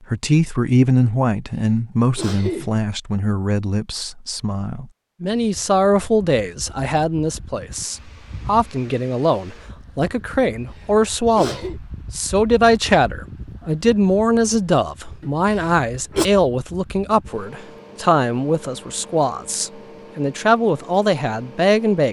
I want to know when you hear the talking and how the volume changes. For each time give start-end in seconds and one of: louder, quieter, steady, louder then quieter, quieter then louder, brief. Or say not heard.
0.1-22.0 steady.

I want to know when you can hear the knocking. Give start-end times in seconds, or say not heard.
not heard.